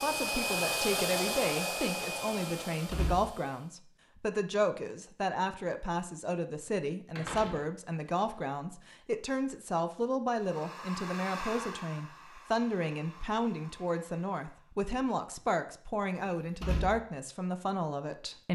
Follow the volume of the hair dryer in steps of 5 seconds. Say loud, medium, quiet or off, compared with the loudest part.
loud, off, medium, off.